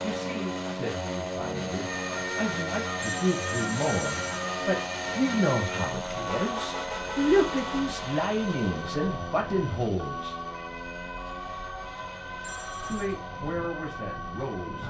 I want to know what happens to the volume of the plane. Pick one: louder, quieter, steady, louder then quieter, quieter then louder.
quieter.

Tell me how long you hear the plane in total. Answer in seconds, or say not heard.
15 s.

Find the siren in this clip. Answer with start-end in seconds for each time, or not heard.
1.9-14.8.